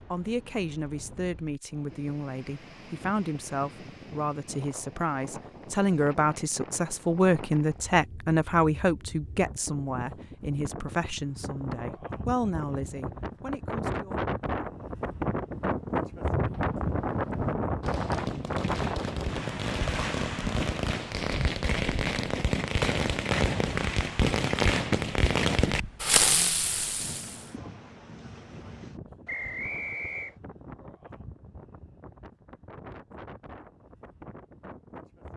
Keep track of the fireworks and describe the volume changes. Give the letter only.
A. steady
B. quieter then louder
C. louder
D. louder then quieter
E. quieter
C.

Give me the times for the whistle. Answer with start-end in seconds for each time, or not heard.
29.2-30.4.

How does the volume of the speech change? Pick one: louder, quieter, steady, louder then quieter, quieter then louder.
louder then quieter.